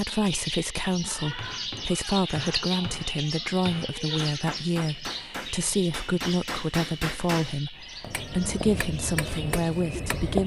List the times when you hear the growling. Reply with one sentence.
The growling can't be heard in this clip.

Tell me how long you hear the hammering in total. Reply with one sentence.
You can hear the hammering for 9 seconds altogether.